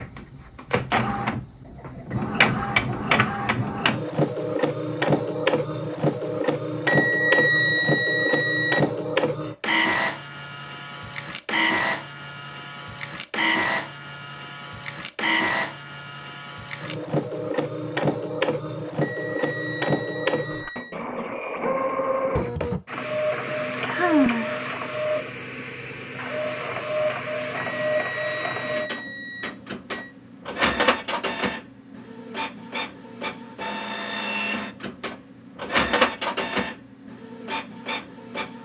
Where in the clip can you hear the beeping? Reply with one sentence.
The beeping can be heard from 6.8 to 9.2 s, from 19.0 to 20.9 s and from 27.6 to 30.1 s.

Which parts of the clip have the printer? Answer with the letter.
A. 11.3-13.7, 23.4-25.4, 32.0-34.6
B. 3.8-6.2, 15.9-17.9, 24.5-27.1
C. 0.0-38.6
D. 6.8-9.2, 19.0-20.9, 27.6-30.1
C.